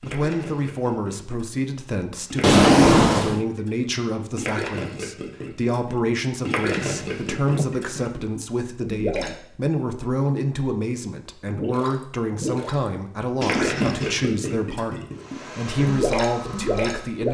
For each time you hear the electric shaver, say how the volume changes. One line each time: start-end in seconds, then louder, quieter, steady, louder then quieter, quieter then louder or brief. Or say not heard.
not heard.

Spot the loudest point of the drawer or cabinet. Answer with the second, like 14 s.
3 s.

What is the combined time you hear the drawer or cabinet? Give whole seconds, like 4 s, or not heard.
3 s.